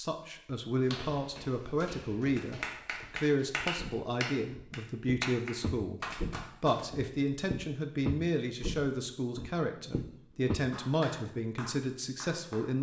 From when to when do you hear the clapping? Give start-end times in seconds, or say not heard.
2.4-7.0, 10.7-12.7.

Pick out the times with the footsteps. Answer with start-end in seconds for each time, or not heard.
0.8-10.6.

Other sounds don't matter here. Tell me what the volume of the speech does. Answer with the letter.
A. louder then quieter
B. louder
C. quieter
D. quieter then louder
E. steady
E.